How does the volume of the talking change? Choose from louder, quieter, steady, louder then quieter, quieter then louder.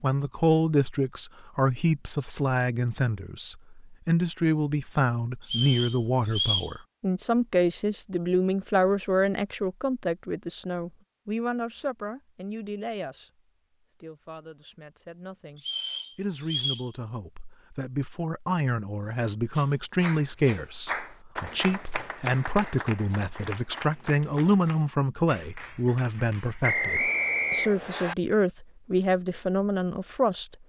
quieter then louder.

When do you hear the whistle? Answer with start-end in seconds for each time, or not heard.
5.4-6.7, 15.6-16.9, 26.6-28.1.